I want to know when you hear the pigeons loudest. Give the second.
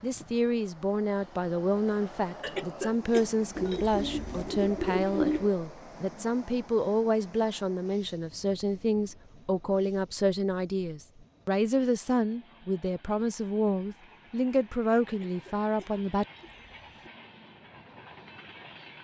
5 s.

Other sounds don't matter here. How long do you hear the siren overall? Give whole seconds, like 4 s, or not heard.
not heard.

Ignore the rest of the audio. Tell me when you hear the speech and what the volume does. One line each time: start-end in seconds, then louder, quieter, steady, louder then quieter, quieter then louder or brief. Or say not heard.
0.0-16.2 steady.